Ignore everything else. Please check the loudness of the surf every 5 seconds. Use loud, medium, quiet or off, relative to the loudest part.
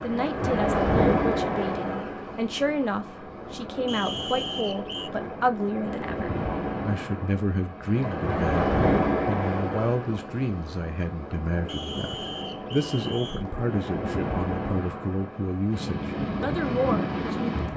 loud, loud, medium, loud.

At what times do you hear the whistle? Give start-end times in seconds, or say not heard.
3.9-5.1, 11.7-13.4.